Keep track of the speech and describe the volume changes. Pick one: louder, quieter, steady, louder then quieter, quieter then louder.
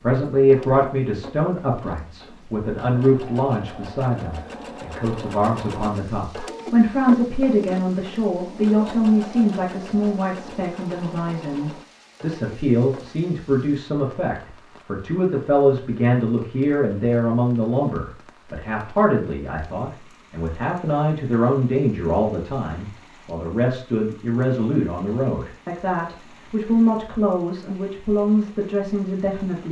steady.